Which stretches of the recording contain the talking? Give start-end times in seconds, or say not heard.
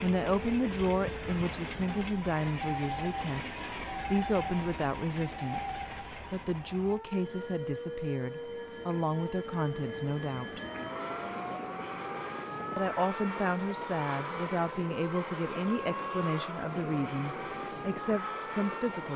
0.0-3.5, 4.1-10.6, 12.8-19.1.